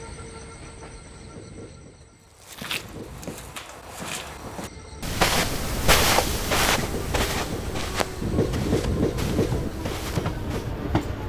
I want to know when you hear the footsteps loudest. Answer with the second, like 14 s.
6 s.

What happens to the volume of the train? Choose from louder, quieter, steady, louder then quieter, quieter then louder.
louder.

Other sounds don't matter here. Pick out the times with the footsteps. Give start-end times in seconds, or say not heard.
2.3-10.8.